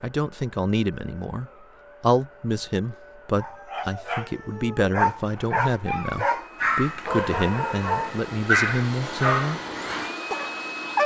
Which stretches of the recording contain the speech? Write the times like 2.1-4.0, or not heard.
0.0-9.6.